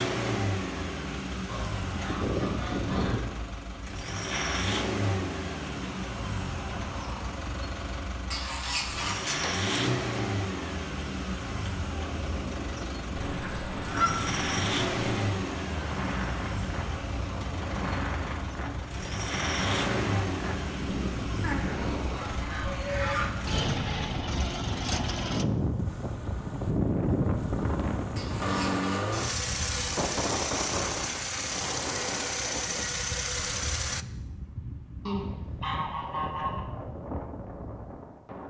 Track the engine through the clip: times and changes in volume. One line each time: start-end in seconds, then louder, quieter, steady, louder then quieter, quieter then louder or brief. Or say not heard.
0.0-34.0 steady.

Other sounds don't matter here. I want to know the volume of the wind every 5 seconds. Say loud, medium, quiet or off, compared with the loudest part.
off, off, medium, loud, loud, loud, loud, medium.